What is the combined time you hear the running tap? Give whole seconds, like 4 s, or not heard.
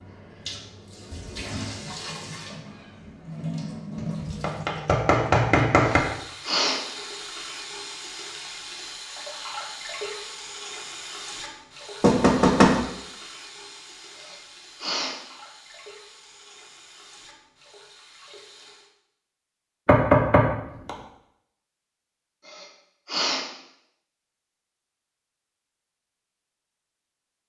19 s.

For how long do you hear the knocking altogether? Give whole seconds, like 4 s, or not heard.
4 s.